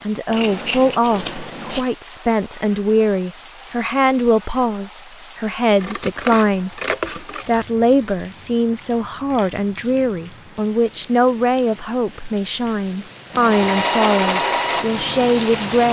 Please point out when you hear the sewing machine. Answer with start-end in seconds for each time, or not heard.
13.3-15.8.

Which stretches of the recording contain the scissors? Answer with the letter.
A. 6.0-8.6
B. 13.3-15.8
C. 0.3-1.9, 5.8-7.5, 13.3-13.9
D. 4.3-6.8
C.